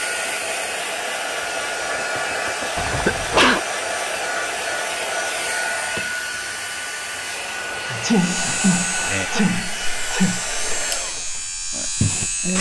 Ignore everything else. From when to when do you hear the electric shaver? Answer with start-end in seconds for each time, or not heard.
8.1-12.5.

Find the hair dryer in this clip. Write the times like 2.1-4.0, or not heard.
0.0-12.5.